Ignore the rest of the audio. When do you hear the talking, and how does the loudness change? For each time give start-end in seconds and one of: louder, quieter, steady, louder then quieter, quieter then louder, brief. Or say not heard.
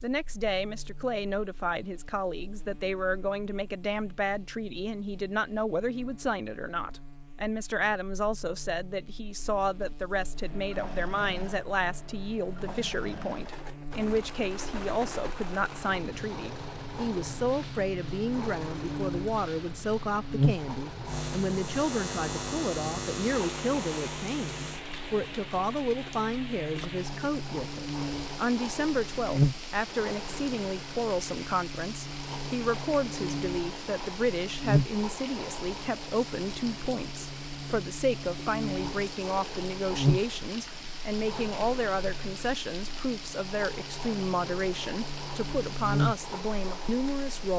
0.0-47.5 steady.